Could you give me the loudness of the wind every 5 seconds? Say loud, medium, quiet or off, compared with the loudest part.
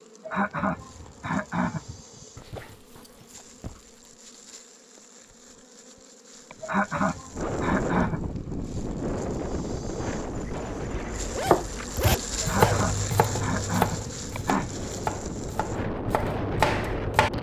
off, loud, medium, loud.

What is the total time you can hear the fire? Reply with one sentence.
The fire can't be heard in this clip.